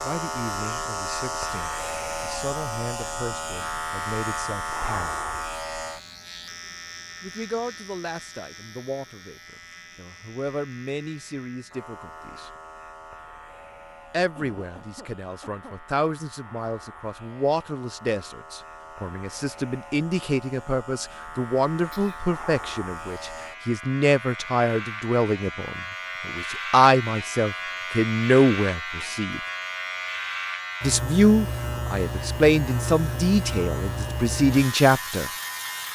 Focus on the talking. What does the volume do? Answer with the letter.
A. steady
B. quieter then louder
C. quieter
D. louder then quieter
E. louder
E.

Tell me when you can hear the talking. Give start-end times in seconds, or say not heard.
0.0-5.2, 7.2-12.5, 14.1-29.4, 30.8-35.3.